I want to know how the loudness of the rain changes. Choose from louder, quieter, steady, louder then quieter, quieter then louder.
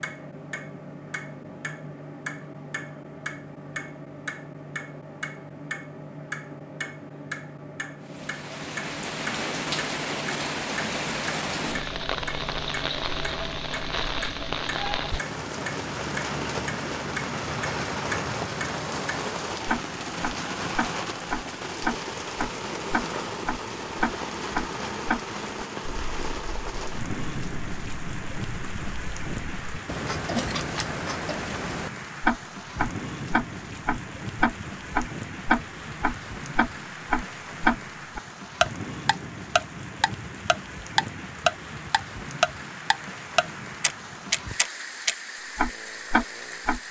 quieter.